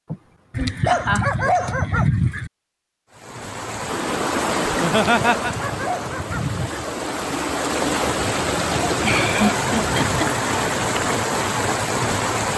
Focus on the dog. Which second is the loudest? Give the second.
1 s.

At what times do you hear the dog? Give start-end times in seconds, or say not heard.
0.5-2.5, 5.0-6.8, 8.6-10.3.